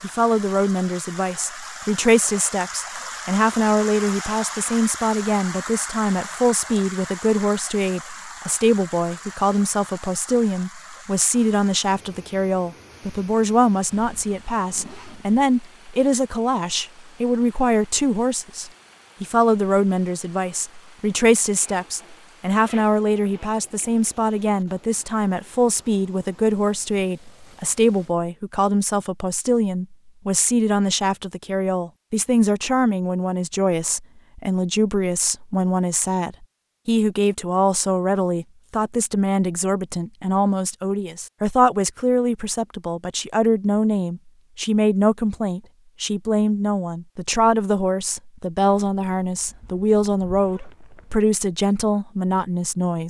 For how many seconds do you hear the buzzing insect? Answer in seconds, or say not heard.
not heard.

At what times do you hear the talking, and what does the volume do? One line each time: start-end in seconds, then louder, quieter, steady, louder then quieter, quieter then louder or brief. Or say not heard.
0.0-53.0 steady.